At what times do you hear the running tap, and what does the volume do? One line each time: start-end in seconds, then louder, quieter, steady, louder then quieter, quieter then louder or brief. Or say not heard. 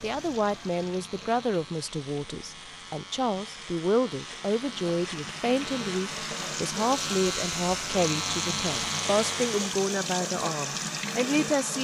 0.0-11.7 louder.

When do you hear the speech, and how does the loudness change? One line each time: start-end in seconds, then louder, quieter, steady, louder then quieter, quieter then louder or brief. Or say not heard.
0.0-11.7 steady.